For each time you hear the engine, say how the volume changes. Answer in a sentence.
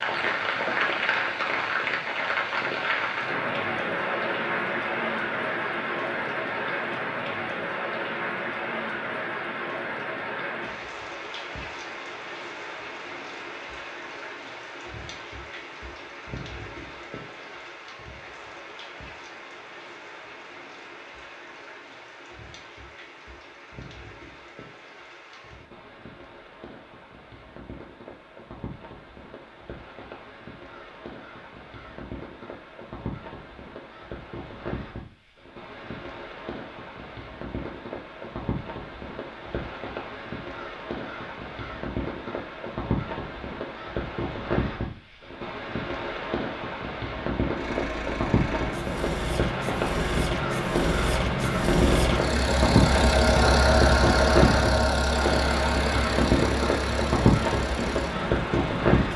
You can hear the engine from 47.5 to 59.1 s, getting louder then quieter.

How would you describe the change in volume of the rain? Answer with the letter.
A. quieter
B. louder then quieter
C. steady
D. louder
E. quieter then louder
E.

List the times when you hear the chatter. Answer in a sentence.
The chatter can't be heard in this clip.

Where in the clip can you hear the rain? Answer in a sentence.
The rain can be heard from 0.0 to 59.1 s.